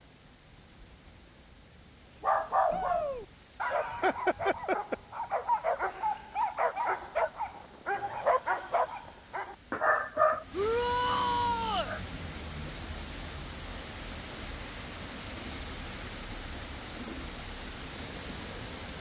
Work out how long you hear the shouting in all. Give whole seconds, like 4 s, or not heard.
2 s.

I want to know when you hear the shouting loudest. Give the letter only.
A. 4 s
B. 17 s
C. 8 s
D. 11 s
D.